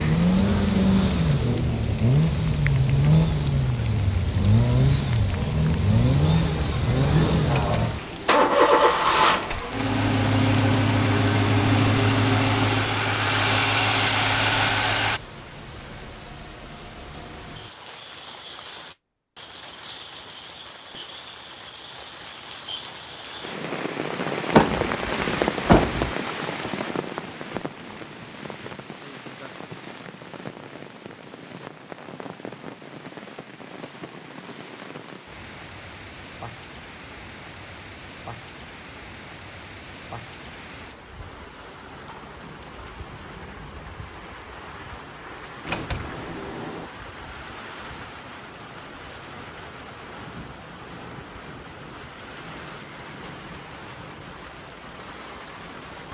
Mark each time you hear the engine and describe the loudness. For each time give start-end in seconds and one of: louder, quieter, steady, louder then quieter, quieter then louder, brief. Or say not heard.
0.0-15.2 steady.